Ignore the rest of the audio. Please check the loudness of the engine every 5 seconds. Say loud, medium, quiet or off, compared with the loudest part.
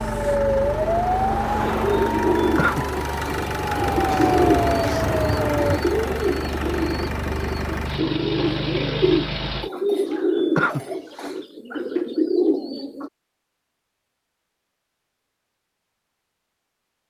loud, loud, off, off.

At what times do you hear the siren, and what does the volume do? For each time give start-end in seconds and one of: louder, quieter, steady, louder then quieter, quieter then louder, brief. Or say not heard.
0.0-5.8 quieter then louder.